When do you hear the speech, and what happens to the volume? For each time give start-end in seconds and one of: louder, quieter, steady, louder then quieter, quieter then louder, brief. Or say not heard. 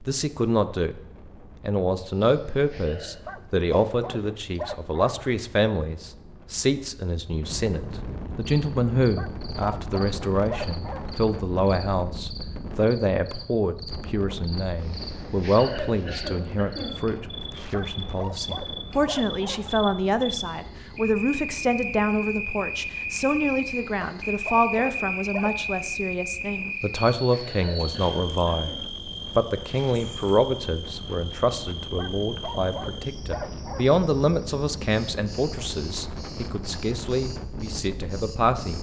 0.0-1.0 brief
1.6-38.7 steady.